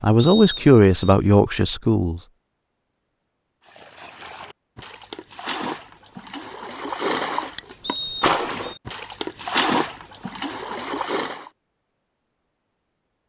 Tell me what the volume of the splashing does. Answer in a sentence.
The volume of the splashing goes up.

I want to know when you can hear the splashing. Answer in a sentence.
You can hear the splashing from 3.6 to 11.5 s.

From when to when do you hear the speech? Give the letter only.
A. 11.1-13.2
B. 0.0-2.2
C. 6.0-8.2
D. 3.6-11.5
B.